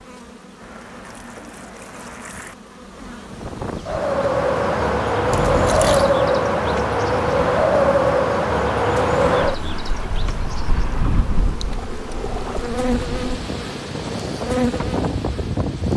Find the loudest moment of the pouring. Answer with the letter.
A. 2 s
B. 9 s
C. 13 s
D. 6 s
D.